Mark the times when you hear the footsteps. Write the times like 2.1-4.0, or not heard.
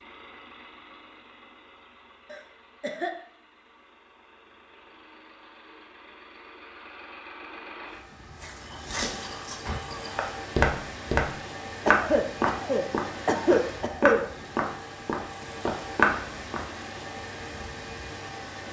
8.4-16.6.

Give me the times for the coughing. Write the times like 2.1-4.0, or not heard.
2.3-3.1, 11.8-14.2.